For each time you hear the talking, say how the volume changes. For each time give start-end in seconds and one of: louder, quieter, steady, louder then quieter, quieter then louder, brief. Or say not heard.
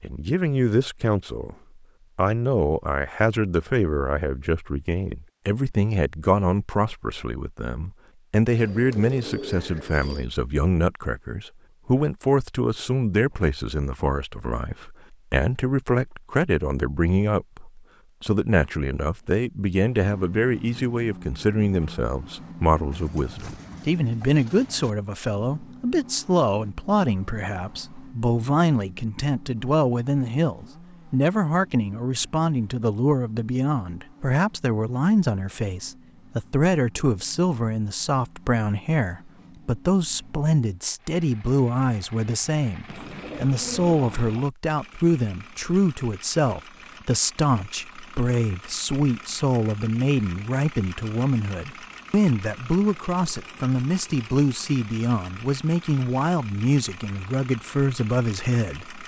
0.0-1.6 brief
2.1-59.0 steady.